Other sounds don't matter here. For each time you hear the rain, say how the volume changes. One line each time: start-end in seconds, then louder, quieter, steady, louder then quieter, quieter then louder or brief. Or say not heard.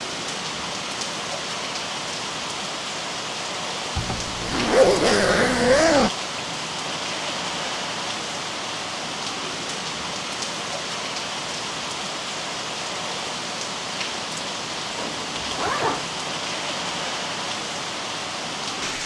0.0-19.0 steady.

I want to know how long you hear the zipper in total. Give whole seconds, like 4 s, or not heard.
3 s.